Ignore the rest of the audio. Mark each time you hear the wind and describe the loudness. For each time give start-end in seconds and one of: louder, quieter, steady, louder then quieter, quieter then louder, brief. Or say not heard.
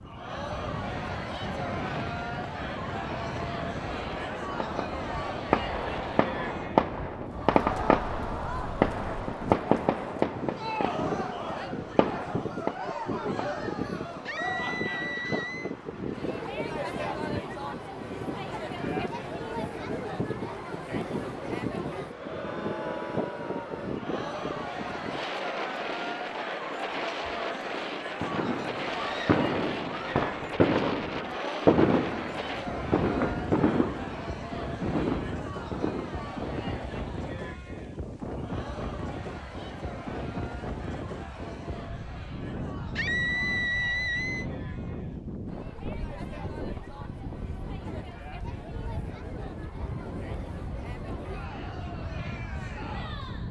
0.0-53.4 steady.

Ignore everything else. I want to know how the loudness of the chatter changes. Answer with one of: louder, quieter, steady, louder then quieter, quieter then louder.
quieter.